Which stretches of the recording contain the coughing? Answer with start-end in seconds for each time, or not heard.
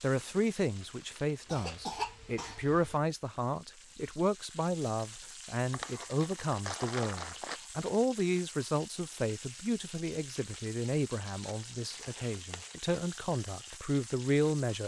1.4-3.0.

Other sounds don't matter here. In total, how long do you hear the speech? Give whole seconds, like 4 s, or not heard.
15 s.